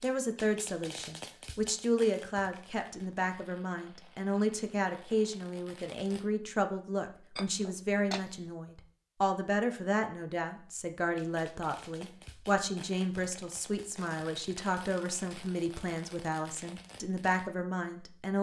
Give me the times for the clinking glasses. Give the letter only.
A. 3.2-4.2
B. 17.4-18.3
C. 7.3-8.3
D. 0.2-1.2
C.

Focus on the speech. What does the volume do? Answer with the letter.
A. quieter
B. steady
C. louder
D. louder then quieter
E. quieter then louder
B.